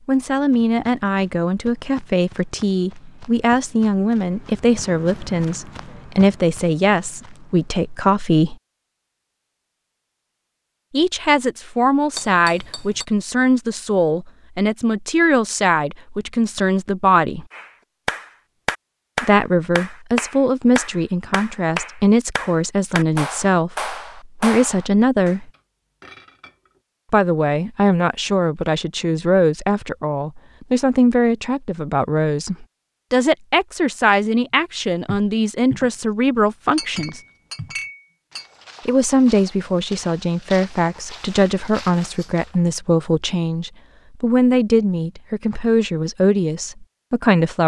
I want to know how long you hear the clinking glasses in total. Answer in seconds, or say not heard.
4 s.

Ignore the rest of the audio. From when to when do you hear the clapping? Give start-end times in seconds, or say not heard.
17.5-25.4.